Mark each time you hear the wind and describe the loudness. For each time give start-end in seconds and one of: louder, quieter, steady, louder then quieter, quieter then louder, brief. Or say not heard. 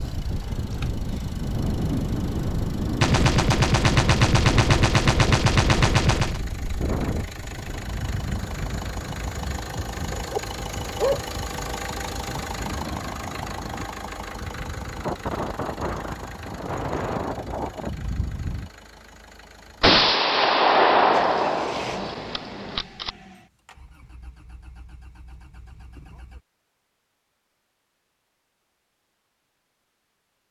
0.0-18.7 quieter then louder.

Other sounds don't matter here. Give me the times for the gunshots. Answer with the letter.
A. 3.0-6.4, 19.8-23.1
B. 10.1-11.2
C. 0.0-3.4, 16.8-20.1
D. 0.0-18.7
A.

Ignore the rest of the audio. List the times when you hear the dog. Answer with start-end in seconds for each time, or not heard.
10.1-11.2.